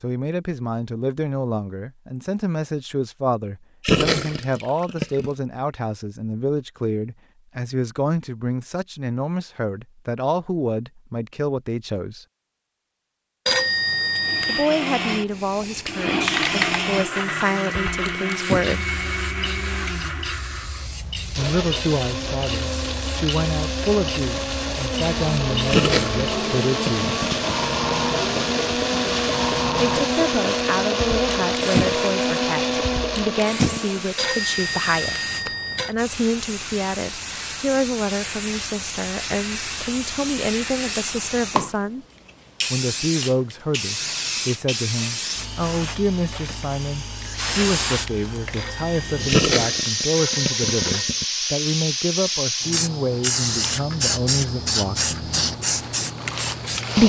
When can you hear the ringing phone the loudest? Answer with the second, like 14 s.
14 s.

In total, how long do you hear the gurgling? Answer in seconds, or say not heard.
5 s.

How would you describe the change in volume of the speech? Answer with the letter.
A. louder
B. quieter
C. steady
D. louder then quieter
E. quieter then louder
C.